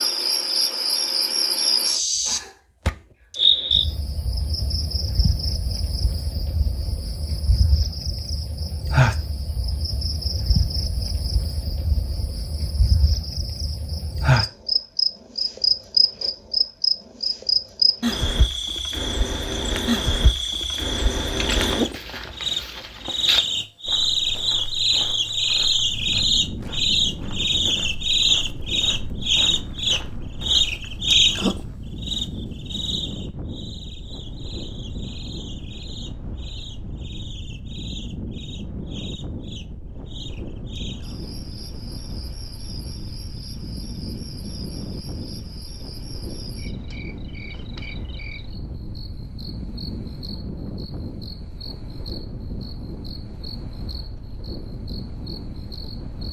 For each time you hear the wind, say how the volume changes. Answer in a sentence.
The wind can be heard from 25.8 to 56.2 s, at a steady volume.